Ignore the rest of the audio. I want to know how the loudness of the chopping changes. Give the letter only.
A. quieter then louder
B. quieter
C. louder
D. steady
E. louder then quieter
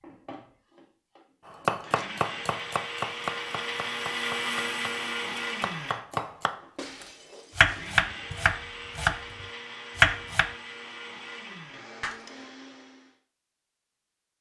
A.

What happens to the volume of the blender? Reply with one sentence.
The loudness of the blender goes up, then down.